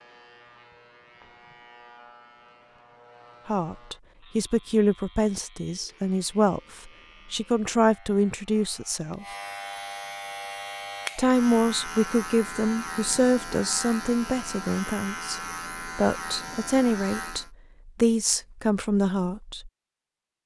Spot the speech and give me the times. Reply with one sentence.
You can hear the speech from 3.5 to 9.2 s and from 11.2 to 19.7 s.